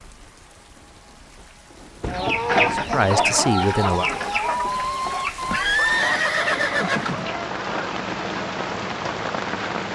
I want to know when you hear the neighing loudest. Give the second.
6 s.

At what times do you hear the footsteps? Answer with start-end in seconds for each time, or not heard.
not heard.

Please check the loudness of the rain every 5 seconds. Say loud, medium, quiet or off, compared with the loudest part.
quiet, loud.